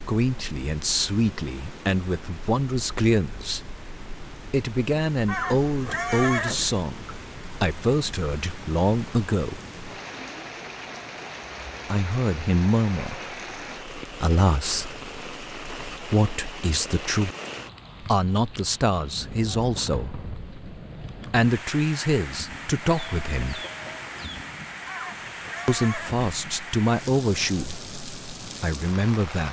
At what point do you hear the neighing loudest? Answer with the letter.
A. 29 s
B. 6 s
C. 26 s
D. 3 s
B.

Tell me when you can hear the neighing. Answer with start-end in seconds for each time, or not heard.
5.2-6.8, 24.9-26.3.